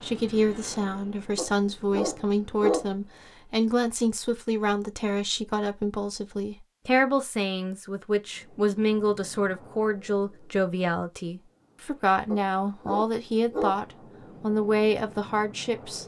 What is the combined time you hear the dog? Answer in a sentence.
You can hear the dog for 3 seconds altogether.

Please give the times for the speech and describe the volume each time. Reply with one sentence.
The speech can be heard from 0.0 to 16.0 s, at a steady volume.